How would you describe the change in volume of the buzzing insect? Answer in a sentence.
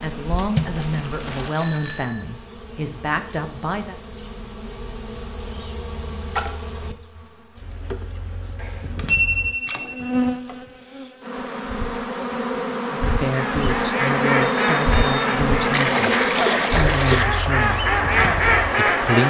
The volume of the buzzing insect goes up.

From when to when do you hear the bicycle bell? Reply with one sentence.
The bicycle bell can be heard from 1.6 to 2.2 s, from 8.6 to 10.1 s and from 14.4 to 15.2 s.